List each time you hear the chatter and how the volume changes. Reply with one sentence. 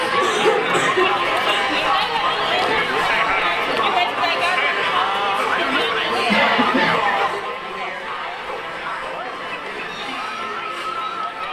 You can hear the chatter from 0.0 to 11.4 s, getting quieter.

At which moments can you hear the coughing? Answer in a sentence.
The coughing can be heard from 0.2 to 1.8 s and from 6.3 to 7.0 s.